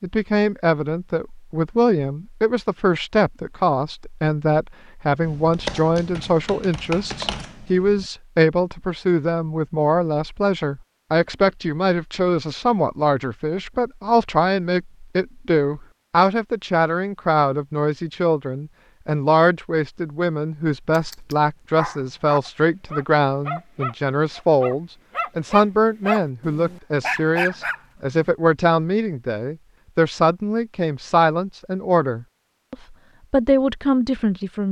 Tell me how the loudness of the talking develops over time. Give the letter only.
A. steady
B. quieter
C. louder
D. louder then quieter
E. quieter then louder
A.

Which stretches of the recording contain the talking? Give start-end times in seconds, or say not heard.
0.0-34.6.